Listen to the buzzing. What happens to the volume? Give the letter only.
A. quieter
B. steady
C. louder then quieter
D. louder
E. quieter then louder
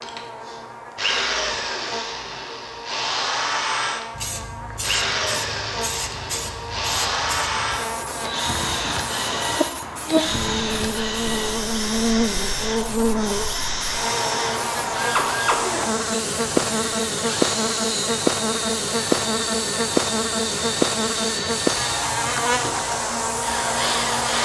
D.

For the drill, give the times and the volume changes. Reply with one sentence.
The drill can be heard from 0.0 to 24.4 s, at a steady volume.